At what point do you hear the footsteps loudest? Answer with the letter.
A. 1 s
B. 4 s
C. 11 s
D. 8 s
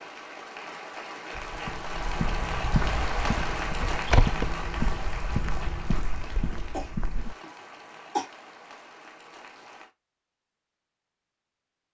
B.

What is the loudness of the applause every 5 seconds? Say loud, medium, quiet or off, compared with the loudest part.
loud, medium, off.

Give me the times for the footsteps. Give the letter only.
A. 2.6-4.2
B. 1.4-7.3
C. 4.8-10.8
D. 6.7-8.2
B.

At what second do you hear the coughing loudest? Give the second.
8 s.